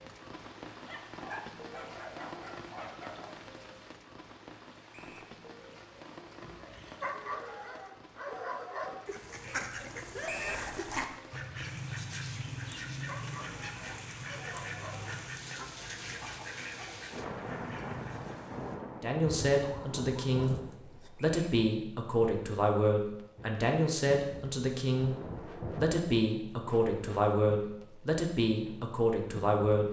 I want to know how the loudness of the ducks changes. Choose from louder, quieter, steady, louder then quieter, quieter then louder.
quieter.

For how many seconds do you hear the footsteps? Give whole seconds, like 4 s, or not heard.
not heard.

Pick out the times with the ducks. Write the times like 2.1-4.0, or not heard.
9.1-18.6.